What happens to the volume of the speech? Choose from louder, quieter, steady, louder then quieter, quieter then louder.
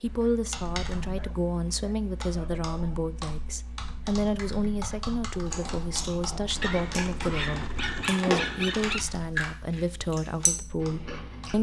steady.